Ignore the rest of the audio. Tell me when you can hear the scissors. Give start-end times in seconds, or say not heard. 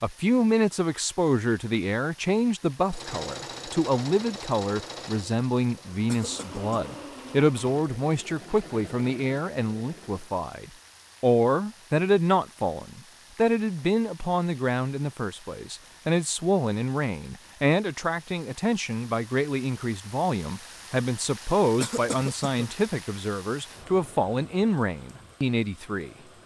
not heard.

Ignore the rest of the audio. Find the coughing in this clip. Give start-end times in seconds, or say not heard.
6.0-6.8, 21.8-22.7.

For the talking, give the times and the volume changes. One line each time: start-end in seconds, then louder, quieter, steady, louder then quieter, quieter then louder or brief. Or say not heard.
0.0-26.1 steady.